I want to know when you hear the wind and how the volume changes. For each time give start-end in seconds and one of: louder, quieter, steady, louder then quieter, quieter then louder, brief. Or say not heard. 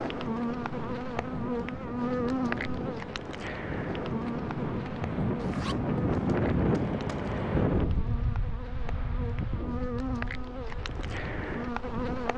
0.0-12.3 louder then quieter.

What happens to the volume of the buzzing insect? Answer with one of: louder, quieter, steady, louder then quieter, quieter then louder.
quieter then louder.